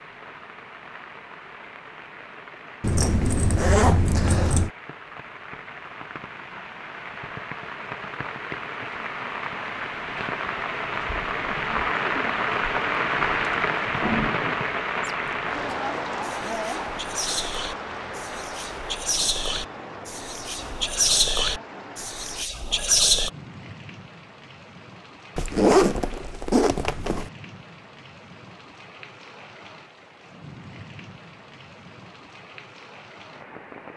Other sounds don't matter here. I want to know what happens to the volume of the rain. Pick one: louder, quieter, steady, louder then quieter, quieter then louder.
louder then quieter.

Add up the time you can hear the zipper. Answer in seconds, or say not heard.
4 s.